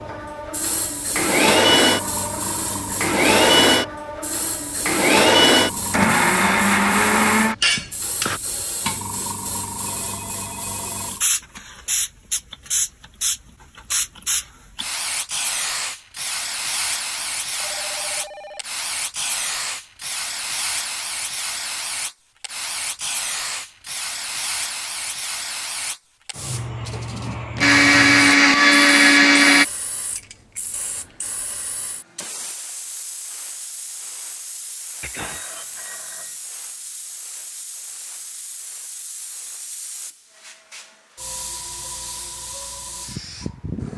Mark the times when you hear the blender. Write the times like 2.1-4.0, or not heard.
0.0-8.4, 27.6-29.6.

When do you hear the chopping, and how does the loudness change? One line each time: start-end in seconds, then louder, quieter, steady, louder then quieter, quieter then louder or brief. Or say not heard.
not heard.